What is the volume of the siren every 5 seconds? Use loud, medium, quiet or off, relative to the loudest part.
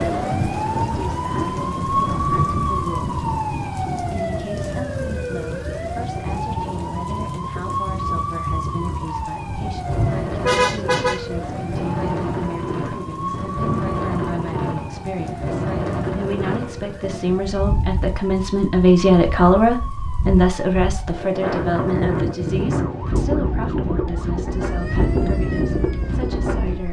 loud, medium, medium, quiet, quiet, quiet.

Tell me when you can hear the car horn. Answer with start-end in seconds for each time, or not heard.
9.8-11.4.